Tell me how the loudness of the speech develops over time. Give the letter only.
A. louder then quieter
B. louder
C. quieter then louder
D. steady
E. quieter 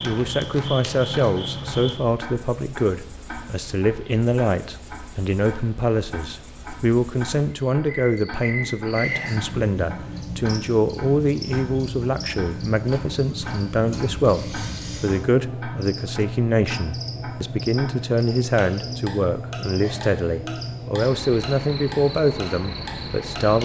D.